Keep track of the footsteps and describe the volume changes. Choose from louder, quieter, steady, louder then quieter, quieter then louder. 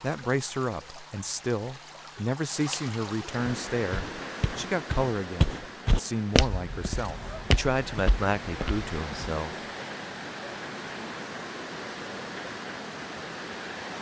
louder then quieter.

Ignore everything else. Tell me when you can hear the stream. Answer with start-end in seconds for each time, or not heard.
0.0-13.9.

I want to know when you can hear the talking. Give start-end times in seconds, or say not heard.
0.0-9.6.